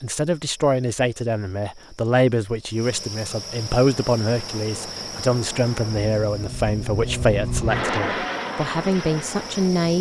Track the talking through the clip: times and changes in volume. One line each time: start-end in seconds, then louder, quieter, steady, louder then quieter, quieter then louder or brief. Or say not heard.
0.0-9.9 steady.